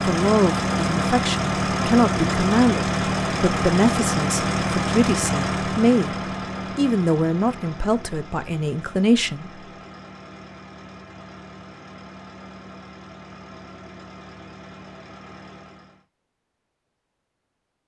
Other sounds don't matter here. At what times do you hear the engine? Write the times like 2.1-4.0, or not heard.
0.0-16.1.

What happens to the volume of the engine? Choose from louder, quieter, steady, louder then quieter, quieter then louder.
quieter.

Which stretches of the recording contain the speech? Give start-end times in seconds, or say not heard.
0.1-6.2, 6.8-9.5.